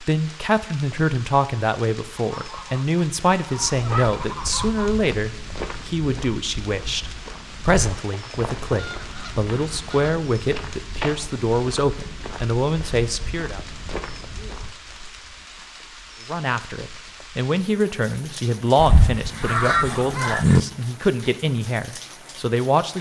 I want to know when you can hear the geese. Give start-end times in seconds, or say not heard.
2.1-4.9, 8.0-10.1, 18.8-20.6.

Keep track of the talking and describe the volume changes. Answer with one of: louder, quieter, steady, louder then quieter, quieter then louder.
steady.